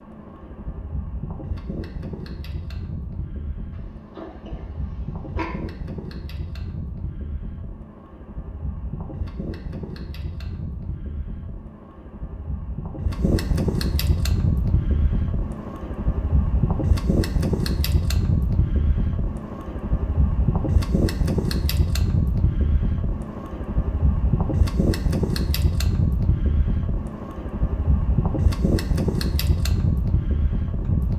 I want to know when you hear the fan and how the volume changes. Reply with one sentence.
You can hear the fan from 0.0 to 31.1 s, getting louder.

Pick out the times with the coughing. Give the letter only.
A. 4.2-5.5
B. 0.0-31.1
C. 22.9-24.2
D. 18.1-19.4
A.